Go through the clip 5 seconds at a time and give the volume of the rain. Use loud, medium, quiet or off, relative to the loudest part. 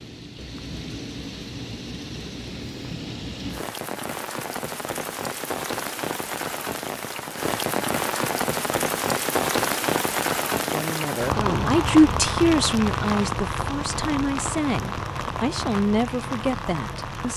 medium, loud, loud, medium.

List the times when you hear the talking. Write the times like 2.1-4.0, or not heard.
10.6-17.3.